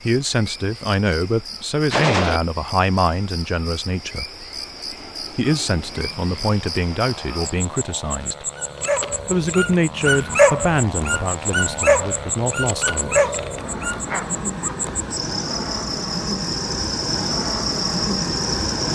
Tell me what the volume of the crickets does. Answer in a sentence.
The loudness of the crickets goes up.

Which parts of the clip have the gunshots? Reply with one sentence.
The gunshots can be heard from 1.9 to 2.4 s.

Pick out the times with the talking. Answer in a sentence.
You can hear the talking from 0.0 to 4.5 s, from 5.3 to 8.4 s and from 9.2 to 13.2 s.